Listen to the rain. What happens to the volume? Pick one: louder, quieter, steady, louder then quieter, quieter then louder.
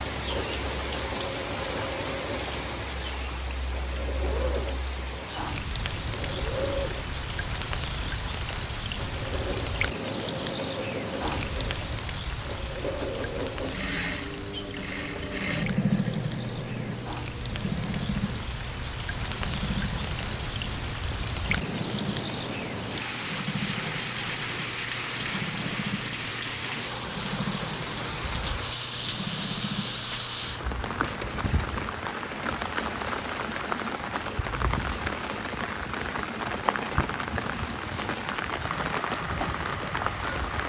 steady.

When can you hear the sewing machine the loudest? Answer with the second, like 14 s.
16 s.